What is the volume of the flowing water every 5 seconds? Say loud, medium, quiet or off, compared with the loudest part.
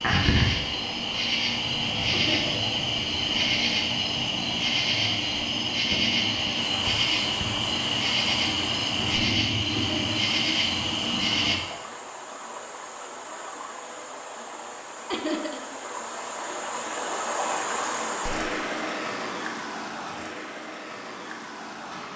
off, medium, medium, loud, medium.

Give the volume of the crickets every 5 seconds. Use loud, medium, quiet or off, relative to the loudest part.
loud, loud, loud, off, off.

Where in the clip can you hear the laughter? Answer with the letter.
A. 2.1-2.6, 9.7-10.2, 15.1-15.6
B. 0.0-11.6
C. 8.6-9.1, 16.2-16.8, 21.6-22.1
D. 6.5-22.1
A.